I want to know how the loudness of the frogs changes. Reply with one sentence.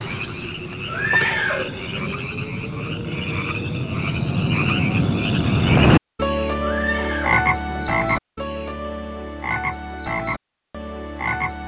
The loudness of the frogs goes up, then down.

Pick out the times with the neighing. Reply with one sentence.
You can hear the neighing from 0.8 to 2.2 s and from 6.6 to 8.0 s.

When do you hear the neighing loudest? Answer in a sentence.
The volume of the neighing peaks at 1 second.